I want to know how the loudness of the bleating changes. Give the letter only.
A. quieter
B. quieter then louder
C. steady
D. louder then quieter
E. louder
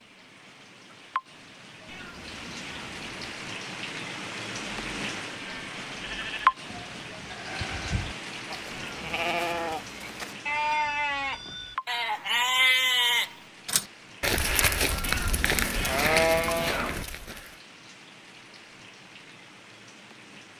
E.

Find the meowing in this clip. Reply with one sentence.
The meowing can be heard from 1.9 to 3.4 s, from 8.7 to 9.6 s and from 15.0 to 17.1 s.